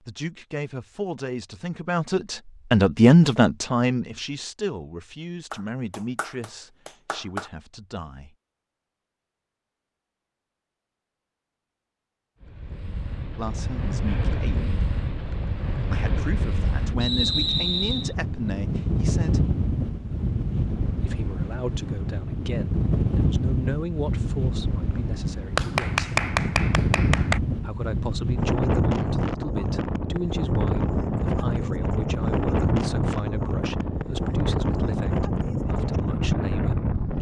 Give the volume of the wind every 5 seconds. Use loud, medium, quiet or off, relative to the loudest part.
off, off, medium, loud, loud, loud, loud, loud.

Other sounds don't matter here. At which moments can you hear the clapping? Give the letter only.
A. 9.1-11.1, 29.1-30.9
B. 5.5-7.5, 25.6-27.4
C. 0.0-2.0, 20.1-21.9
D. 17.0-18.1
B.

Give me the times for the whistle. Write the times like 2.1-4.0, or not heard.
17.0-18.1.